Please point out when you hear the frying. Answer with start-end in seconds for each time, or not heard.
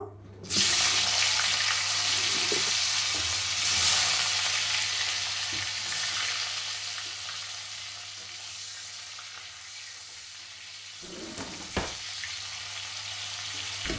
0.0-13.9.